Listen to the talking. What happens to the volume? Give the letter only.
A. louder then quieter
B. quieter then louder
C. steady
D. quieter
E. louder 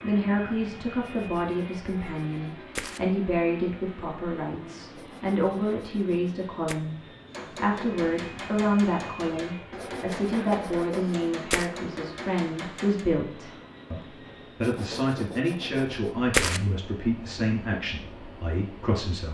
C.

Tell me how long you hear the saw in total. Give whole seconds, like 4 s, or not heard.
8 s.